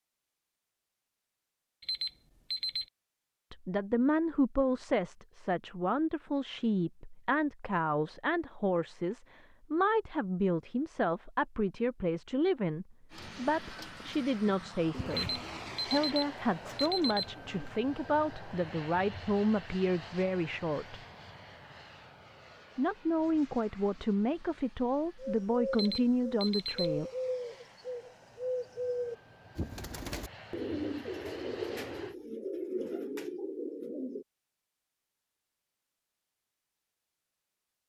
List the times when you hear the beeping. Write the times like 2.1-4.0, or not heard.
1.8-2.9, 15.1-17.4, 25.7-26.9.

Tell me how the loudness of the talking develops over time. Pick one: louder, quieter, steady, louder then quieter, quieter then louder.
steady.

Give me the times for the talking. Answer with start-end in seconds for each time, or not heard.
3.5-21.0, 22.8-27.1.